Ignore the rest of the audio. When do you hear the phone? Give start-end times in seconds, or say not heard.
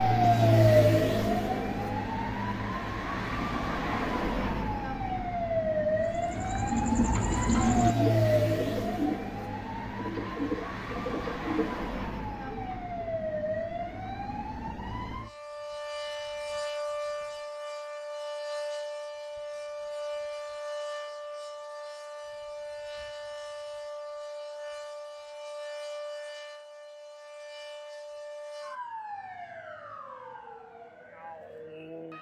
not heard.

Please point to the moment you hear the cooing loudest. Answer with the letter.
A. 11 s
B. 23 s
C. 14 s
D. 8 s
D.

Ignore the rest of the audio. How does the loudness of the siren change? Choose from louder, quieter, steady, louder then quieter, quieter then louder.
quieter.